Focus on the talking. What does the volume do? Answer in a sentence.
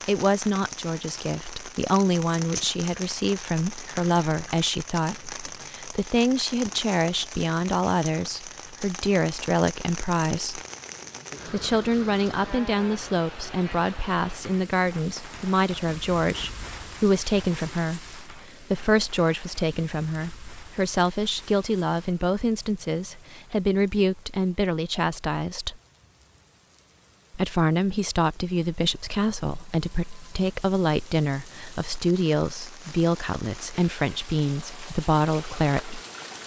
The volume of the talking stays about the same.